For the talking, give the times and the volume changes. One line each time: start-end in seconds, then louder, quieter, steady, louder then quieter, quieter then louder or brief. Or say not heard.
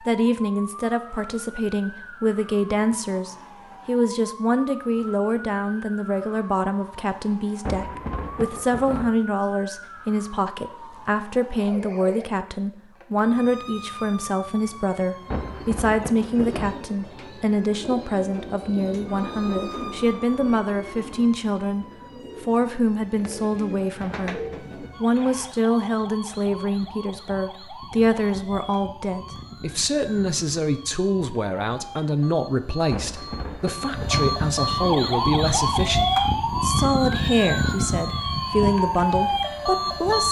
0.0-40.2 steady.